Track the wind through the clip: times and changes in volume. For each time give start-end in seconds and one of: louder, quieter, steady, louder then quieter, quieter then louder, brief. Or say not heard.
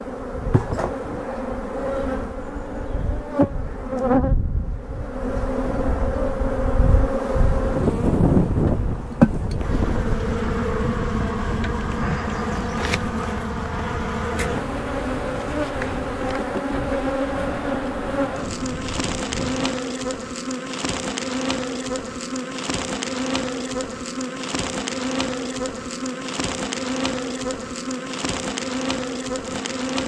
0.1-19.7 louder then quieter.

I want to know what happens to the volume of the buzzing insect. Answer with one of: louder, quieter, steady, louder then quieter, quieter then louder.
steady.